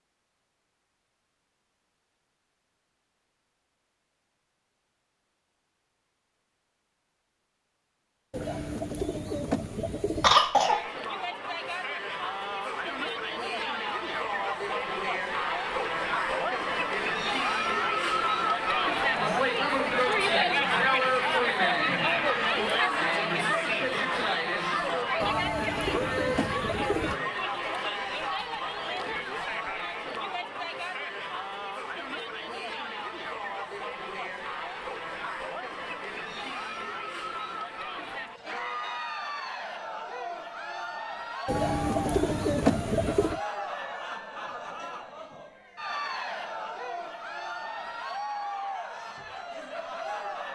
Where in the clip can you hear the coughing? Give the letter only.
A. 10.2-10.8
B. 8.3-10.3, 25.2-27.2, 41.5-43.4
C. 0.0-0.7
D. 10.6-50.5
A.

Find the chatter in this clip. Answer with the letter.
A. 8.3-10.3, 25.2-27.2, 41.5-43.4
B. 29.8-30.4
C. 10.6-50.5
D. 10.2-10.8
C.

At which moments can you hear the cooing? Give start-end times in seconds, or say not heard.
8.3-10.3, 25.2-27.2, 41.5-43.4.